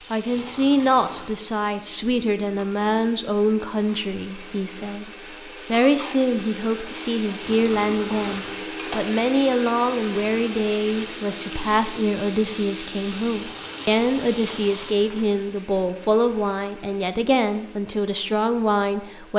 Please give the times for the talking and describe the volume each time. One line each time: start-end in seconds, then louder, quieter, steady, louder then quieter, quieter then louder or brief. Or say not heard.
0.1-19.3 steady.